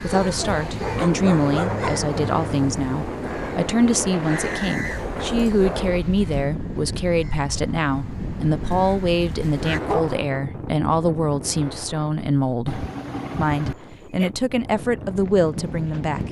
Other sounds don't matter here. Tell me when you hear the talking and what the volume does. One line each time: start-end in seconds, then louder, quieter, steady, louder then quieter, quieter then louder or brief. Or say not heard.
0.0-16.2 steady.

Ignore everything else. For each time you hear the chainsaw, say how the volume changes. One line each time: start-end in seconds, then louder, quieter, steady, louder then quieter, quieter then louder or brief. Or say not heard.
not heard.